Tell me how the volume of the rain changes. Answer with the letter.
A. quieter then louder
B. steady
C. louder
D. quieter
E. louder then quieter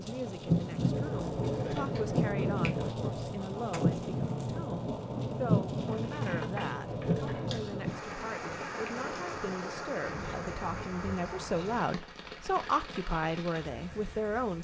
D.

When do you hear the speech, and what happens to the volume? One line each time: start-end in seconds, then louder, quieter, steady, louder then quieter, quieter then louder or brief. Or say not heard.
0.0-14.5 louder.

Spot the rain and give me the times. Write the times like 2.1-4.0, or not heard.
0.0-14.5.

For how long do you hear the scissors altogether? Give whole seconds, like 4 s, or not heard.
6 s.